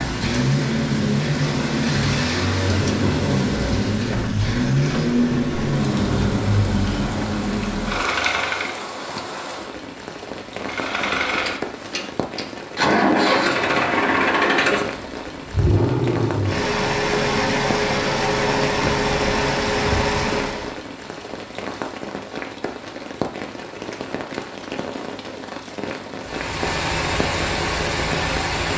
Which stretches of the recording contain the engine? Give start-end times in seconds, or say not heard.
0.0-8.8, 10.6-20.8, 26.2-28.7.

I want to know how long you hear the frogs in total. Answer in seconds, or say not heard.
not heard.